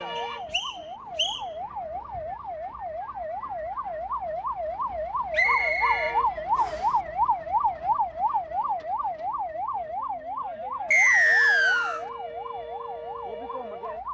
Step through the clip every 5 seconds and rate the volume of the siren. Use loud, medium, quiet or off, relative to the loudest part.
medium, loud, medium.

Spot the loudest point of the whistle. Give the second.
11 s.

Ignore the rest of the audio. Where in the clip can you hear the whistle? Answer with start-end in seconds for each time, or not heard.
0.1-1.4, 5.3-6.8, 10.9-12.0.